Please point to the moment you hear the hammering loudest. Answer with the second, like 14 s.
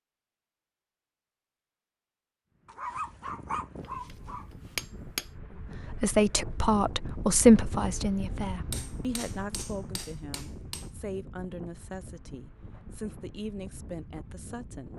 5 s.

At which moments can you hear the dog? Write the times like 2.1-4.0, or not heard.
2.6-4.5.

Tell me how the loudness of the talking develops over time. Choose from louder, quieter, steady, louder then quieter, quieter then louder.
quieter.